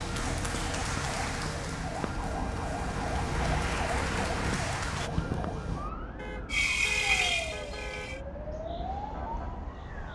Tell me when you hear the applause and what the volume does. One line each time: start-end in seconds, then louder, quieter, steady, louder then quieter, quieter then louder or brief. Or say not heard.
0.0-5.1 quieter then louder.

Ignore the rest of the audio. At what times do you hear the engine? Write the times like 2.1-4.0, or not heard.
6.5-8.2.